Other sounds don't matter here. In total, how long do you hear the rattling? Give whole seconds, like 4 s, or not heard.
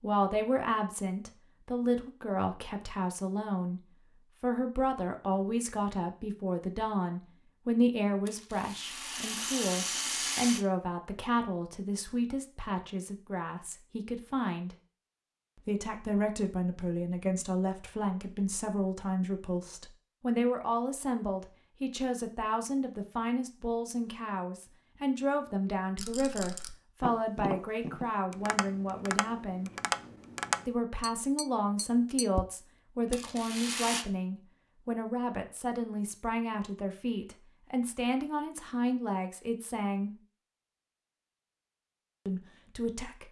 4 s.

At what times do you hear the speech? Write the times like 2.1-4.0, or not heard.
0.0-14.8, 15.6-29.7, 30.6-40.1, 42.2-43.2.